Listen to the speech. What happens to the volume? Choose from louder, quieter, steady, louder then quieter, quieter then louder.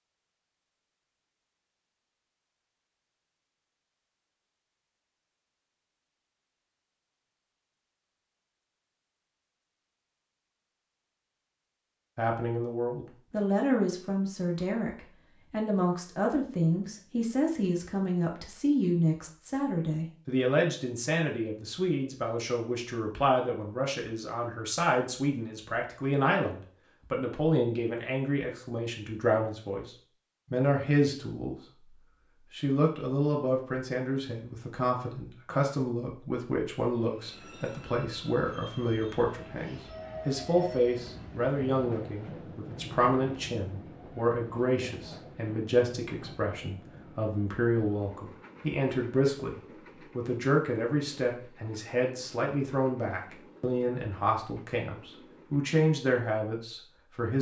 steady.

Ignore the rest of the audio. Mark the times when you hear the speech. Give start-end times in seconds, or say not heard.
12.2-57.3.